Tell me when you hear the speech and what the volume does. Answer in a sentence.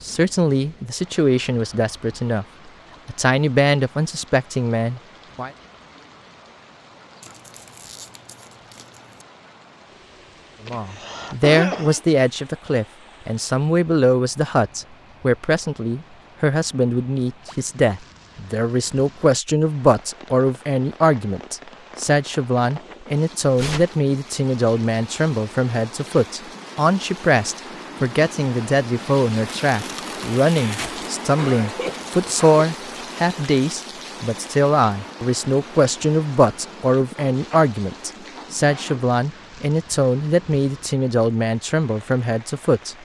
The speech can be heard briefly from 0.0 to 2.5 s; briefly from 3.0 to 5.5 s; and from 10.7 to 42.9 s, at a steady volume.